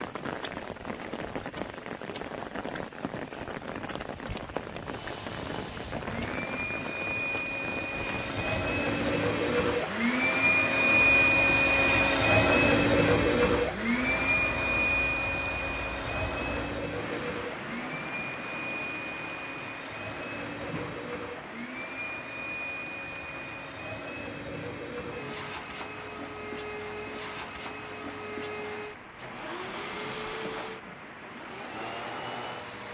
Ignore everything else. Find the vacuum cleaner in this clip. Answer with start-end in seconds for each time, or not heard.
4.8-32.8.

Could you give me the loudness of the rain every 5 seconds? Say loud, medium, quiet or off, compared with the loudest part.
loud, loud, loud, loud, medium, medium, medium.